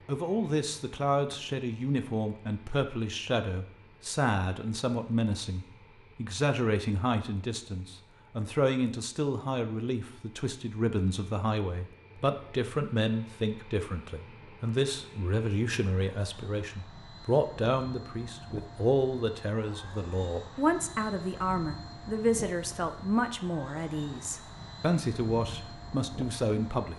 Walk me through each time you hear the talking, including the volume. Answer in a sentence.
The talking can be heard from 0.1 to 26.9 s, at a steady volume.